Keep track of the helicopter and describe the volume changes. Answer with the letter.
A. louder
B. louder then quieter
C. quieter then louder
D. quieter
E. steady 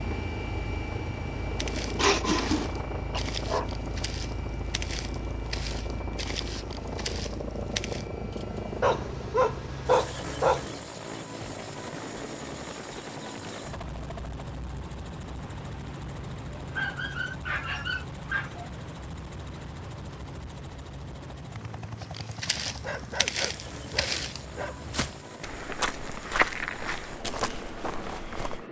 D.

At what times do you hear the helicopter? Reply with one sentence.
You can hear the helicopter from 0.0 to 28.6 s.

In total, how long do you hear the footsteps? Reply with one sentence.
You can hear the footsteps for 13 seconds altogether.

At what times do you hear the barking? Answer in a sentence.
You can hear the barking from 1.9 to 3.6 s, from 8.8 to 10.7 s, from 16.8 to 18.7 s and from 22.6 to 25.1 s.